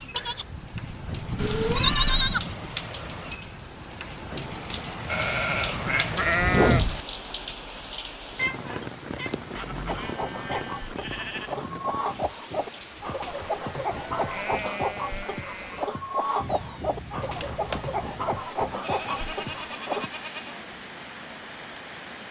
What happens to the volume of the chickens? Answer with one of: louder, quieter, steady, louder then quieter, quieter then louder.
steady.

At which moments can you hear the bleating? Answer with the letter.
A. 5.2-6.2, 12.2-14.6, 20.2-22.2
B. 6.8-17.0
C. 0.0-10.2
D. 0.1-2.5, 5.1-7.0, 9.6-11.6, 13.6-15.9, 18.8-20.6
D.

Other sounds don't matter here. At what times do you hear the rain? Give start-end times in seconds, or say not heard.
0.0-22.2.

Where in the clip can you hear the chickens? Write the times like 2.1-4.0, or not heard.
9.8-20.1.